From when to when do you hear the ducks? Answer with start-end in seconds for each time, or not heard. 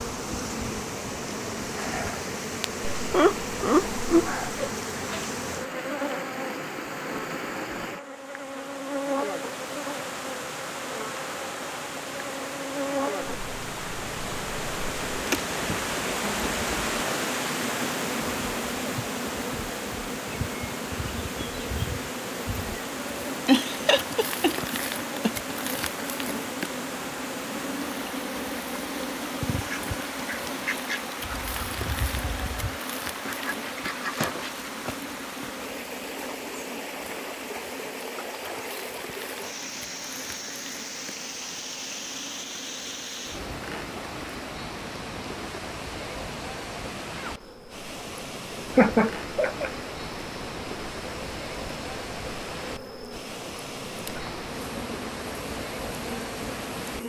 29.4-34.7.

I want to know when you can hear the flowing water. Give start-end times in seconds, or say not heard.
0.0-57.0.